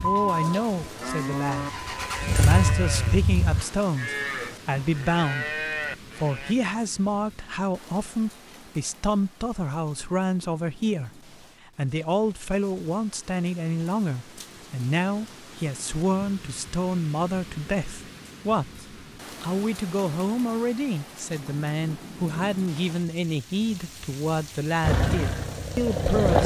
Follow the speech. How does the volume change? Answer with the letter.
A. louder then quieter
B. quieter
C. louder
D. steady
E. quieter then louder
D.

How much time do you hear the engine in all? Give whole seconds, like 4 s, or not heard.
5 s.